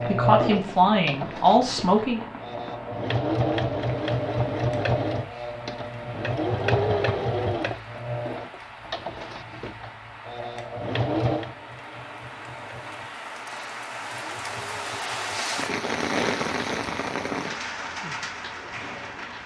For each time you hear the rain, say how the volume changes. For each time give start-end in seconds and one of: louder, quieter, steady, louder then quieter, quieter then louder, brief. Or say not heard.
0.0-19.4 louder.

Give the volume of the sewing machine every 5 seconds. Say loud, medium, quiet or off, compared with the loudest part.
loud, loud, medium, quiet.